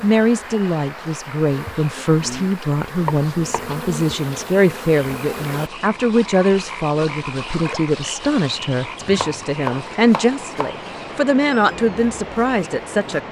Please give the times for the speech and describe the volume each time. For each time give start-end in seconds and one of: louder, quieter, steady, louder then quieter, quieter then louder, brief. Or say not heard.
0.0-13.2 steady.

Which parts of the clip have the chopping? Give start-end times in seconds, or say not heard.
3.0-3.8, 9.0-10.8.